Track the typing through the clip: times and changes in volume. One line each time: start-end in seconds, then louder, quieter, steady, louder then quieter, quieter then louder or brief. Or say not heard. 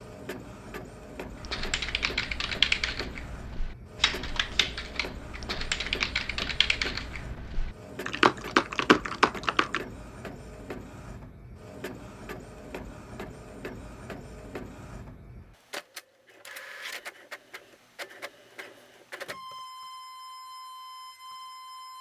1.4-9.8 quieter then louder.